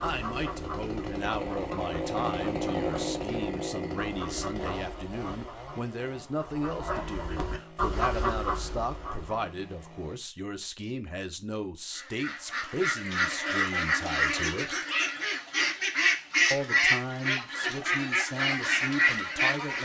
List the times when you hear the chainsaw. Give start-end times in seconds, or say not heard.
0.0-10.2.